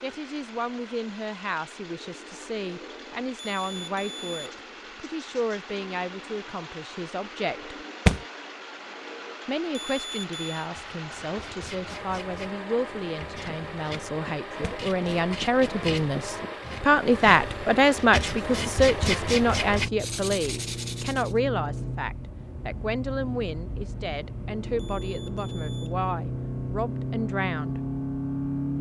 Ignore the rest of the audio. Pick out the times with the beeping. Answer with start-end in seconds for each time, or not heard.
3.4-4.5, 9.7-10.7, 24.8-25.9.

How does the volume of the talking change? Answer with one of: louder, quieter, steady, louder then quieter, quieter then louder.
louder then quieter.